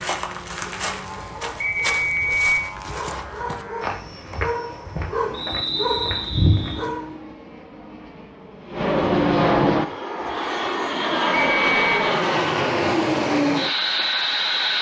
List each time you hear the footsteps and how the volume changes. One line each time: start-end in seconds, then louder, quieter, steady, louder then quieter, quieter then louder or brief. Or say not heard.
0.0-6.8 steady.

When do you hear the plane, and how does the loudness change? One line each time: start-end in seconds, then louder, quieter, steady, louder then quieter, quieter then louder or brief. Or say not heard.
0.0-14.7 louder.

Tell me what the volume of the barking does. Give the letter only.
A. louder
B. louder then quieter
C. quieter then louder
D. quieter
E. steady
A.